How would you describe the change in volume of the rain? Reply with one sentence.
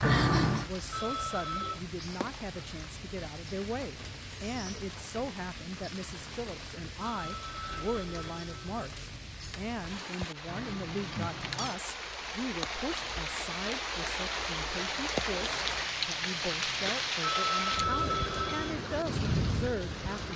The loudness of the rain goes up.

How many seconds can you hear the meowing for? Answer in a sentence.
The meowing can be heard for 4 seconds in total.